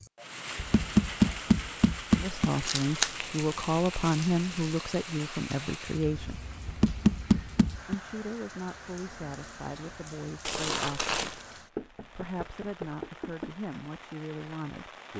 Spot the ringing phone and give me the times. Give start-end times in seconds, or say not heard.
not heard.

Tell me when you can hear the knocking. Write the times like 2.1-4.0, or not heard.
0.6-2.5, 6.7-8.0, 11.8-13.5.